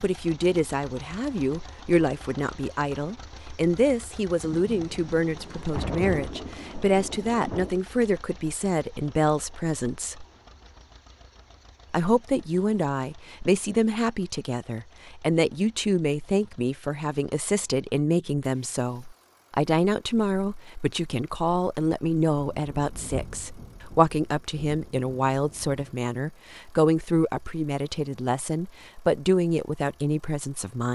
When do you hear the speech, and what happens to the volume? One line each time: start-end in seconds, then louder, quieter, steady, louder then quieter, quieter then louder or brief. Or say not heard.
0.0-10.2 steady
11.9-30.9 steady.